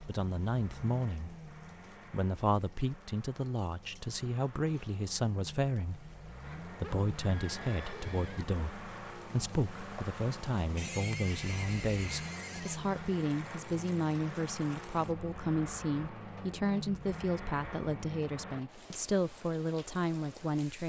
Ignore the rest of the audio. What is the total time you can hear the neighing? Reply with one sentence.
The neighing can be heard for 4 seconds in total.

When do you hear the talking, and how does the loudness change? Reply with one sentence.
The talking can be heard briefly from 0.1 to 1.4 s; and from 2.1 to 20.8 s, at a steady volume.